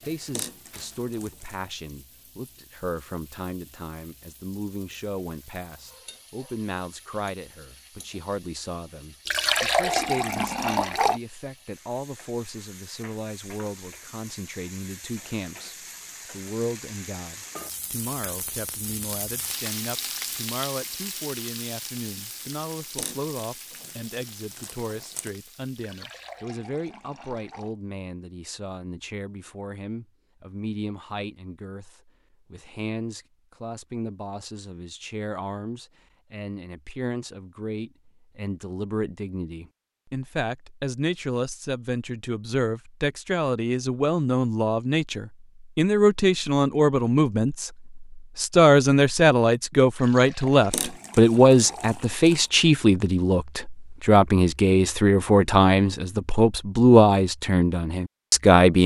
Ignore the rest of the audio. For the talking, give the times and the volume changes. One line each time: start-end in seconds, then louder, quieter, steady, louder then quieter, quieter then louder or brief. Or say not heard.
0.0-58.8 louder.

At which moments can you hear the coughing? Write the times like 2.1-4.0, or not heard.
not heard.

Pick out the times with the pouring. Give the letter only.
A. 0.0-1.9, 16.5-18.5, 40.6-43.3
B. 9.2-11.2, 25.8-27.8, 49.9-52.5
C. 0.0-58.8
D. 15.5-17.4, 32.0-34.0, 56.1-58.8
B.